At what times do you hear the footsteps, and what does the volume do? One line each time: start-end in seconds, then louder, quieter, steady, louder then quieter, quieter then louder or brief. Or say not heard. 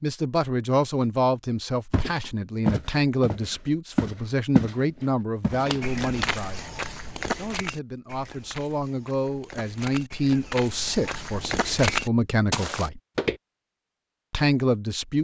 1.9-13.4 quieter then louder.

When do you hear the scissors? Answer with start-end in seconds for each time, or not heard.
5.7-6.3.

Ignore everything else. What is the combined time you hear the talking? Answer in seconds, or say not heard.
14 s.